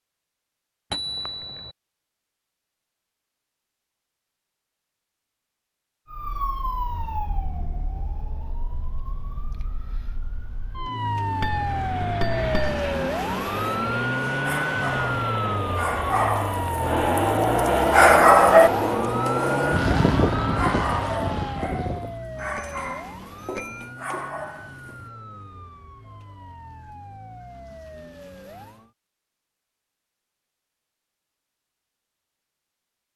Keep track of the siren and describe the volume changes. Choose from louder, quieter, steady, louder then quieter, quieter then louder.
louder then quieter.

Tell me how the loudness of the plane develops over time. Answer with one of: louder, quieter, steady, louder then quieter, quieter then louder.
louder.